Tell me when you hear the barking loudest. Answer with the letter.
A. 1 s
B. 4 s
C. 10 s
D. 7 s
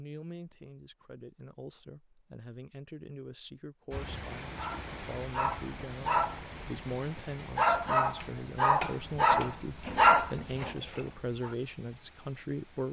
C.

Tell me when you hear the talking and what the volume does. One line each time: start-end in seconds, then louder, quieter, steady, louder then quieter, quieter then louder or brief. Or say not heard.
0.0-12.8 louder.